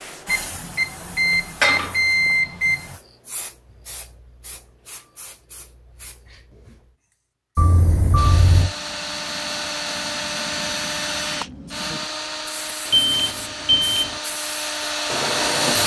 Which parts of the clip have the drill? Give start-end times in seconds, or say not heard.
8.2-15.8.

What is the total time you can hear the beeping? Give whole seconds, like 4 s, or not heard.
5 s.